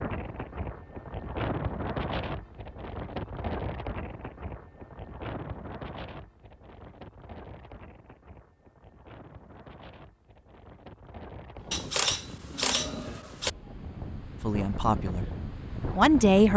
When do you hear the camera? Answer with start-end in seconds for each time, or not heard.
11.7-13.5.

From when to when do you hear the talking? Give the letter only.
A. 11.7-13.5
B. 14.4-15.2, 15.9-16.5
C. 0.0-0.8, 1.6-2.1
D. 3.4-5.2
B.